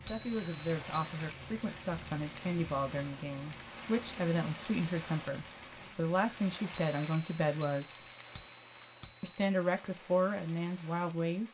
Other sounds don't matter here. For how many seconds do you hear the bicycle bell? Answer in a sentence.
The bicycle bell can be heard for 4 seconds in total.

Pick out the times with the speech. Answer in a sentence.
You can hear the speech from 0.0 to 8.1 s and from 9.2 to 11.4 s.